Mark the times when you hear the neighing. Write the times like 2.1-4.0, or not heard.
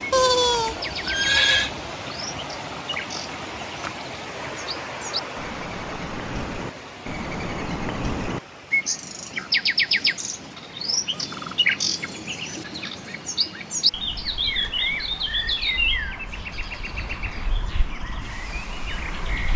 0.1-1.7.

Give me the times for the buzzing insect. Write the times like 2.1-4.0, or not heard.
not heard.